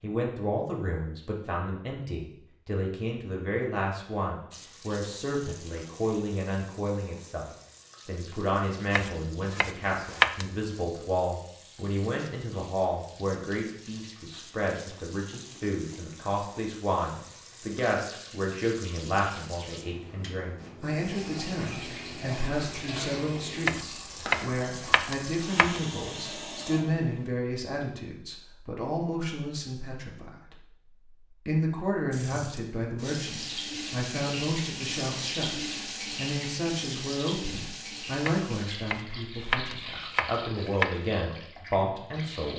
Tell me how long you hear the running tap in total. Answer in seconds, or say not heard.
33 s.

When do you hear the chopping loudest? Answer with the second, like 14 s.
10 s.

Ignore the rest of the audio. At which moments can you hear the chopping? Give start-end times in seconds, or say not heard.
8.9-10.4, 23.6-25.8, 38.2-41.0.